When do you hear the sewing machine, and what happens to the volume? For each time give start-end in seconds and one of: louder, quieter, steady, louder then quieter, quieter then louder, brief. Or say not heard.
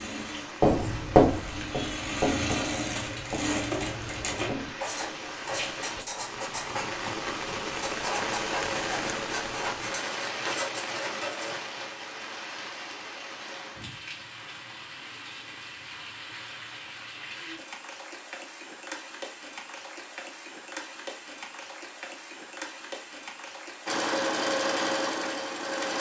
0.0-4.5 louder
23.9-25.9 brief.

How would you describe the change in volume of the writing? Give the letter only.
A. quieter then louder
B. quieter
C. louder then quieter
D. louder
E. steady
B.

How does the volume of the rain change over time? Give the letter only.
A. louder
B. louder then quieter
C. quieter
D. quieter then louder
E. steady
B.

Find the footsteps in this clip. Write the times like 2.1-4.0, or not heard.
not heard.